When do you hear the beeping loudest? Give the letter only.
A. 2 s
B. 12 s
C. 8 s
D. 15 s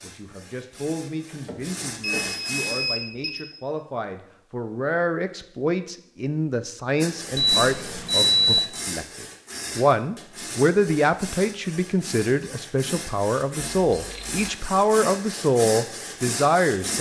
C.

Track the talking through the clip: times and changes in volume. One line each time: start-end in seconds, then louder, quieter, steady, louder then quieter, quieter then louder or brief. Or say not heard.
0.0-16.9 louder.